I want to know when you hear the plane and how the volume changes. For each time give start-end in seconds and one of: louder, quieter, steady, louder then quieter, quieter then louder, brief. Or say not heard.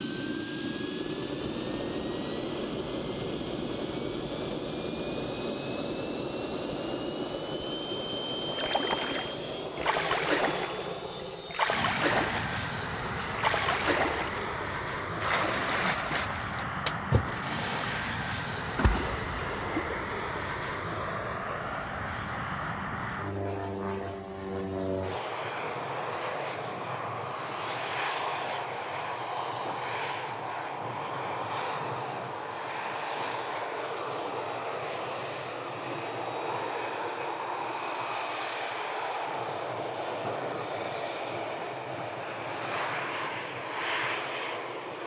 0.0-45.0 steady.